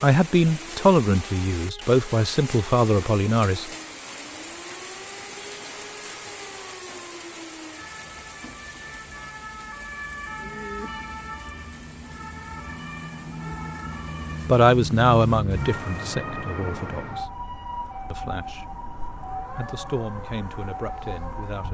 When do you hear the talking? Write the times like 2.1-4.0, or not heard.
0.0-3.7, 14.4-17.2, 18.1-18.8, 19.4-21.6.